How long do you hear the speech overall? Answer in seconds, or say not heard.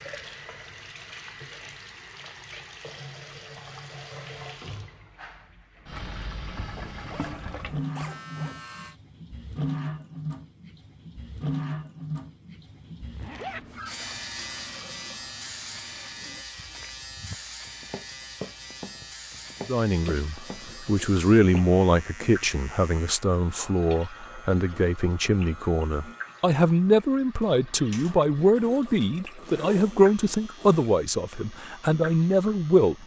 13 s.